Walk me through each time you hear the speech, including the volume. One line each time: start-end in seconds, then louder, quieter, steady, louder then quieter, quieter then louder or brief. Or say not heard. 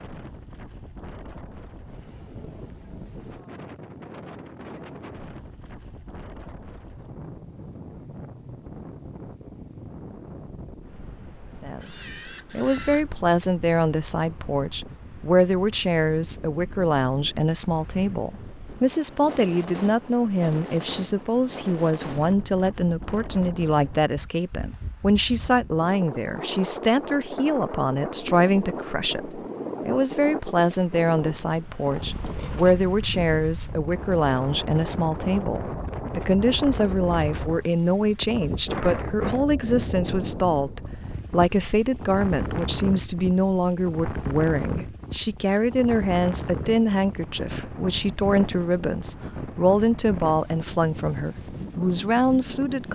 11.6-52.8 steady.